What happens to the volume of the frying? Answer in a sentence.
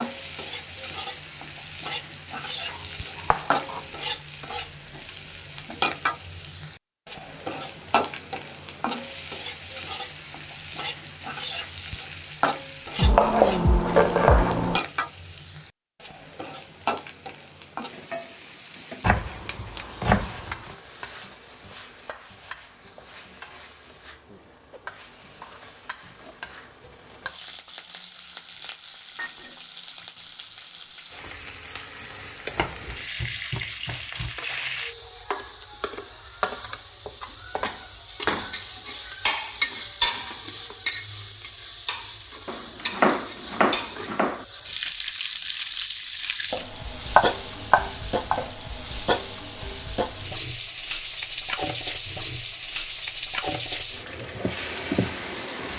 The volume of the frying goes down, then up.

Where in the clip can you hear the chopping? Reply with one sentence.
You can hear the chopping from 2.7 to 3.8 s, from 12.9 to 14.8 s, from 19.0 to 20.8 s, from 32.5 to 34.3 s, from 42.5 to 44.5 s and from 47.1 to 48.5 s.